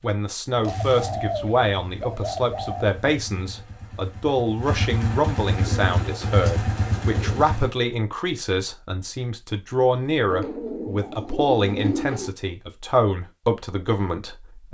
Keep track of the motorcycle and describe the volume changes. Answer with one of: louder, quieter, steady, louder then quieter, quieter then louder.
quieter then louder.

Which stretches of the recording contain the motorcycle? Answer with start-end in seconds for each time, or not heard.
0.0-7.7.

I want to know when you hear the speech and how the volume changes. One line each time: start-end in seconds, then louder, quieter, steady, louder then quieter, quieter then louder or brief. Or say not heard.
0.0-14.6 steady.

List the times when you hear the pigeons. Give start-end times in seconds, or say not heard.
0.6-2.9, 5.5-7.5, 10.3-12.3.